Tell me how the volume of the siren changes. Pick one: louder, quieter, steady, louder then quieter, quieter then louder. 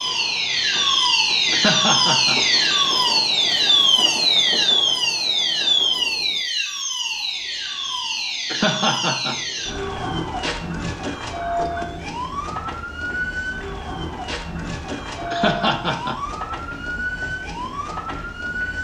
quieter.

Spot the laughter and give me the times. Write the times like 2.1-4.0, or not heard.
1.5-2.5, 8.5-9.4, 15.3-16.2.